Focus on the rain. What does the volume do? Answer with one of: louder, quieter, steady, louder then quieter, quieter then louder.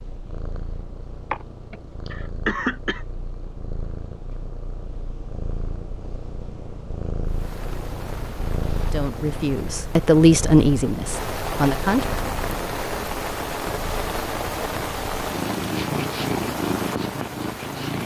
louder.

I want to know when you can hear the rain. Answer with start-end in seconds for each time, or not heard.
7.2-18.0.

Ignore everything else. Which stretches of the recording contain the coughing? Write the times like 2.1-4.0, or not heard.
1.3-3.0.